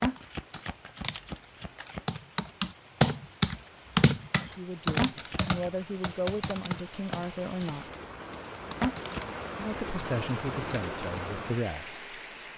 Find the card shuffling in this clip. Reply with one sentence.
The card shuffling can be heard from 0.0 to 2.2 s, from 5.0 to 5.7 s and from 8.8 to 9.4 s.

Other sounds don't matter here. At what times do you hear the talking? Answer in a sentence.
The talking can be heard from 4.4 to 7.8 s and from 9.6 to 12.5 s.